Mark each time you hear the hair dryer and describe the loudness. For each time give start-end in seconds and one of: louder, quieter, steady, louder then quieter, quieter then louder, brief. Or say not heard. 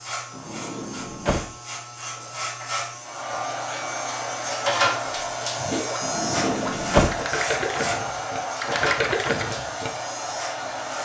3.0-11.0 steady.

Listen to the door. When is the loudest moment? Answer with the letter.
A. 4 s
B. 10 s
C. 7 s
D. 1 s
C.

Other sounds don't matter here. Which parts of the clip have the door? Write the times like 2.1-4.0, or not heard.
0.3-1.5, 6.0-7.2.